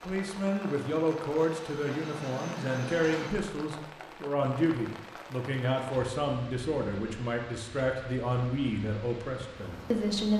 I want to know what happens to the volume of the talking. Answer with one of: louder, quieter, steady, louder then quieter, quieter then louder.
steady.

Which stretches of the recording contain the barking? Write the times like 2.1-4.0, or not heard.
not heard.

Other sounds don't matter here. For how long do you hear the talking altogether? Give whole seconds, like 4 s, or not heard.
10 s.